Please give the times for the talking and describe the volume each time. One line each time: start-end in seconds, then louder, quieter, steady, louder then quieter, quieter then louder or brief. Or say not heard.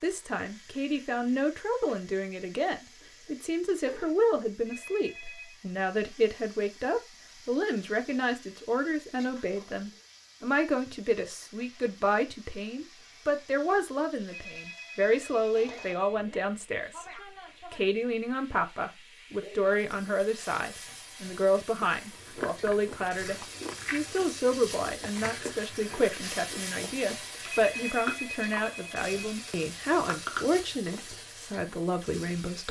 0.0-32.6 steady.